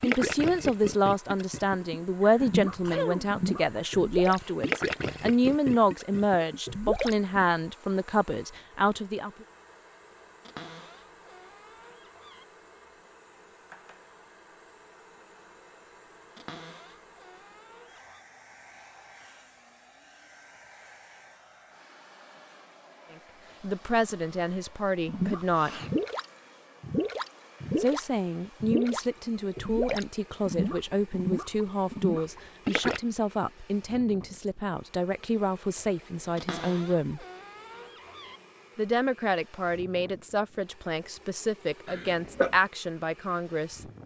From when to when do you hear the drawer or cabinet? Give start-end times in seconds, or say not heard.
10.4-12.4, 16.4-18.2, 36.4-38.4.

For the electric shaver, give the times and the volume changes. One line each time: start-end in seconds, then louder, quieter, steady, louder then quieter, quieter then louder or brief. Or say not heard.
not heard.